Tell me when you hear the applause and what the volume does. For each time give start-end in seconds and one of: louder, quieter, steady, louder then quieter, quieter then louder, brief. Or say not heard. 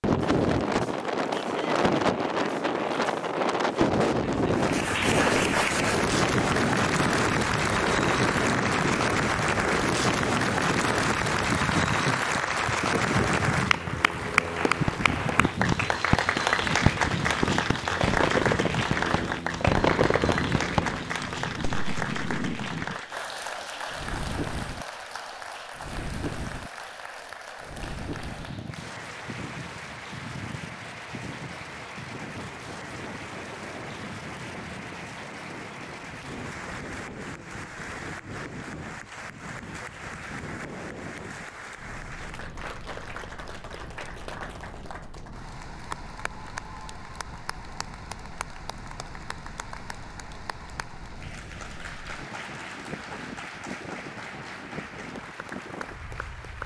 4.5-56.6 quieter.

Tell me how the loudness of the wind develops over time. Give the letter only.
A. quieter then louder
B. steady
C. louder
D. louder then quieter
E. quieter
E.